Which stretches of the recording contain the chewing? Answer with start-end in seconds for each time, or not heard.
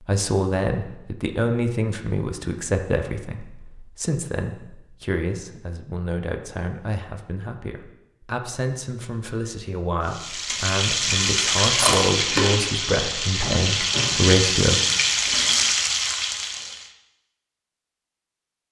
11.8-12.7.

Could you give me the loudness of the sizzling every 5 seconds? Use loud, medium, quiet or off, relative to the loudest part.
off, off, loud, loud.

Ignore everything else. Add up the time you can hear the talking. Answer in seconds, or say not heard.
15 s.